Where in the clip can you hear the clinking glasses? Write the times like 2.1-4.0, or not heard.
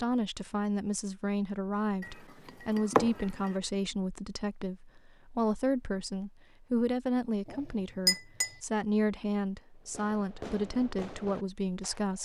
2.0-3.5, 7.5-8.6.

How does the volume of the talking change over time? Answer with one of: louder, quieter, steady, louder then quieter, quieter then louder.
steady.